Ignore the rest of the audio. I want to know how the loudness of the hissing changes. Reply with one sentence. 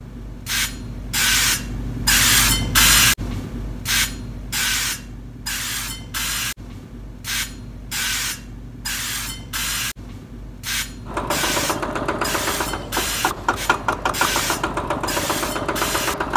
The volume of the hissing goes down.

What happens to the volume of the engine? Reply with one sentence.
The loudness of the engine stays about the same.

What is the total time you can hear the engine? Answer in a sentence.
You can hear the engine for 5 seconds altogether.